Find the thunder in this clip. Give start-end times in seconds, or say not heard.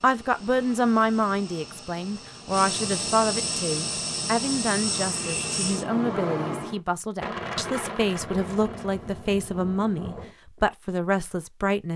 7.2-10.3.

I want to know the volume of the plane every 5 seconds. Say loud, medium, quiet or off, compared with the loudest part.
loud, loud, off.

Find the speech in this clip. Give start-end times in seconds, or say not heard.
0.0-11.9.